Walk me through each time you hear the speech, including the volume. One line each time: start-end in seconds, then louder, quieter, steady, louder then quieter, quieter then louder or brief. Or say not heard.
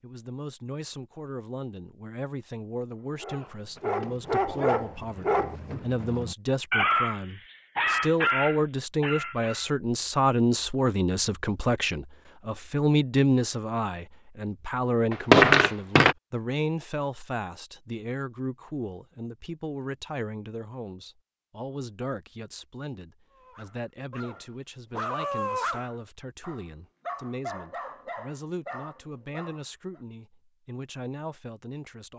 0.0-32.1 louder then quieter.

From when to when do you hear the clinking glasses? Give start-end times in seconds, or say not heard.
15.1-16.1.